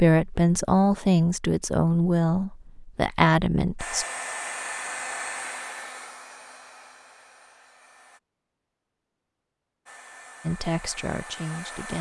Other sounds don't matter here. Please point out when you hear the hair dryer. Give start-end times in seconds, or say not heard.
3.8-8.2, 9.8-11.9.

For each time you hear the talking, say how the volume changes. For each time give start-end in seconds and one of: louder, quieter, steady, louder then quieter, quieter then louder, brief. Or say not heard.
0.0-4.0 quieter then louder
10.4-11.9 brief.